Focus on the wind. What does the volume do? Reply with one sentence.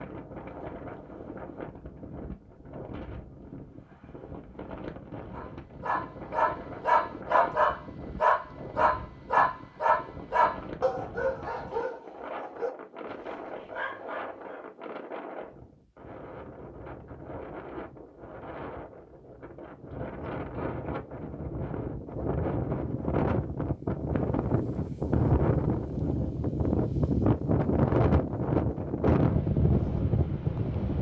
The volume of the wind goes up.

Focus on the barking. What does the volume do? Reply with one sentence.
The loudness of the barking goes down.